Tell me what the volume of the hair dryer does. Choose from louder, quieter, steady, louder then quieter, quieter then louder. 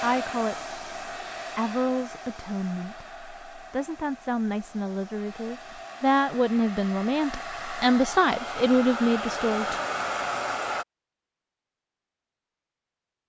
quieter then louder.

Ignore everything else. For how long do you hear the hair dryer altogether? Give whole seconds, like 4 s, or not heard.
11 s.